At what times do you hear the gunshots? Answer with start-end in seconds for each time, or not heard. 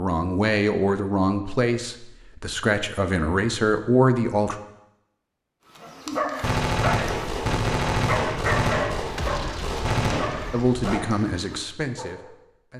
6.4-11.1.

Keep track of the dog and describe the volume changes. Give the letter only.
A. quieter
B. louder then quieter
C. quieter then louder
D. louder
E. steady
A.